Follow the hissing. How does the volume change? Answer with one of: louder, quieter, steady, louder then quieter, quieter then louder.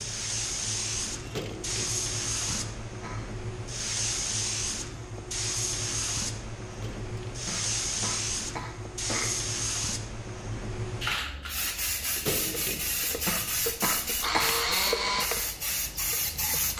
steady.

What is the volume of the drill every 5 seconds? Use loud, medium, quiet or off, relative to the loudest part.
off, off, loud, loud.